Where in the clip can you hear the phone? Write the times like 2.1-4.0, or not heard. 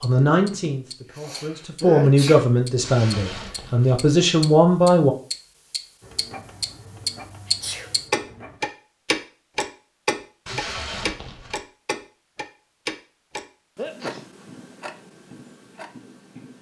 not heard.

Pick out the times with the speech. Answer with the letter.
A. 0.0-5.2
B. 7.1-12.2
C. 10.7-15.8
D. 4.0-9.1
A.